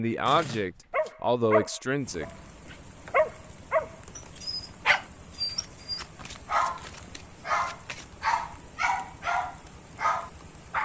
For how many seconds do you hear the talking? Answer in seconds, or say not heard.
2 s.